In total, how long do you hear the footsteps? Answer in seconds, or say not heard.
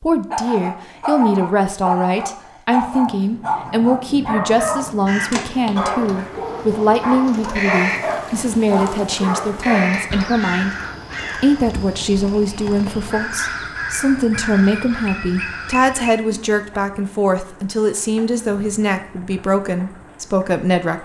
not heard.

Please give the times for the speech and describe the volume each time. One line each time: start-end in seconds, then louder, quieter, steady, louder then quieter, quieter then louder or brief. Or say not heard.
0.0-10.8 steady
11.3-21.0 steady.